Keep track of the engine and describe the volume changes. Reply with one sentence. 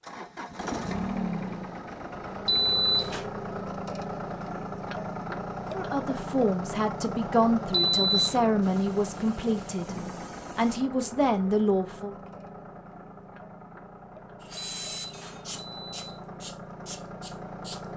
The volume of the engine goes down.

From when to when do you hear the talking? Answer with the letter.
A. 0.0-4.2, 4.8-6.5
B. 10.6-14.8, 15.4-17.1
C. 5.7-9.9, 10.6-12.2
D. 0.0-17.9
C.